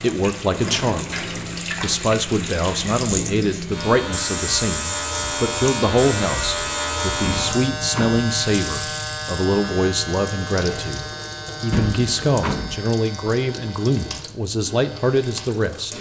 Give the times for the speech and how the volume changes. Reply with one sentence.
The speech can be heard from 0.0 to 15.9 s, at a steady volume.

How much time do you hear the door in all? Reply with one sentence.
The door can be heard for 3 seconds in total.